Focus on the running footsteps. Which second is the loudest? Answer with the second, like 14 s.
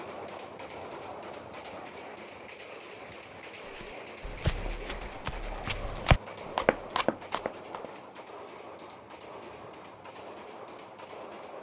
6 s.